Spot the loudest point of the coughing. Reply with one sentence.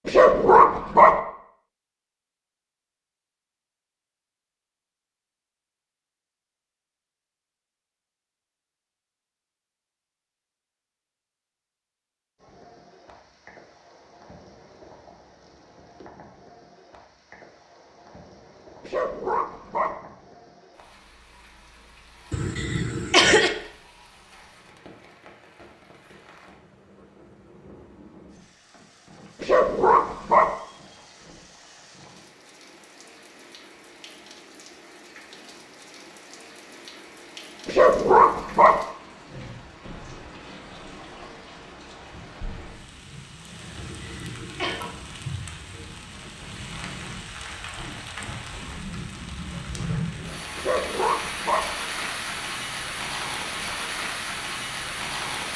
The volume of the coughing peaks at 23 seconds.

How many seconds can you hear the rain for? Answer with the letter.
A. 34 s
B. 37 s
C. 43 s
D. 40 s
C.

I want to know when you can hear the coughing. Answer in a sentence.
The coughing can be heard from 22.3 to 23.6 s and from 43.8 to 44.8 s.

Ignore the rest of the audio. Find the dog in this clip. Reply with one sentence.
You can hear the dog from 0.1 to 1.1 s, from 18.8 to 19.9 s, from 29.4 to 30.5 s, from 37.6 to 38.8 s and from 50.5 to 51.7 s.